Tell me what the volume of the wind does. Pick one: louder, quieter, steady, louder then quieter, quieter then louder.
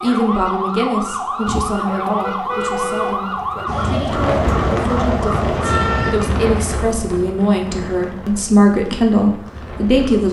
quieter.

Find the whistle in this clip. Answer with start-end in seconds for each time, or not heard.
not heard.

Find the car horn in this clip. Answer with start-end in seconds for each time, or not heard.
1.4-3.6.